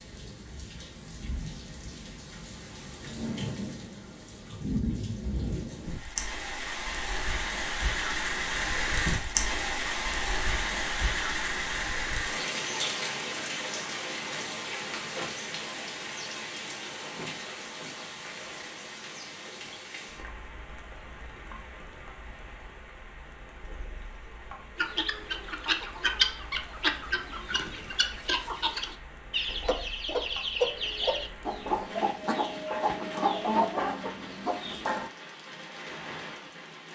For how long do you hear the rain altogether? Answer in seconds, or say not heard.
37 s.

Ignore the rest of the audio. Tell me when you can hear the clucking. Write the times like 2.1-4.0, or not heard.
24.8-35.1.